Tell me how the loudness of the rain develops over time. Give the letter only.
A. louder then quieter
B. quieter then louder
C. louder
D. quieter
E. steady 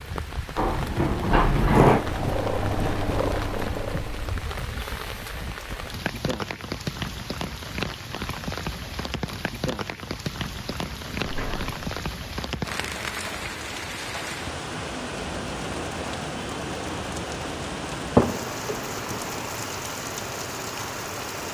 E.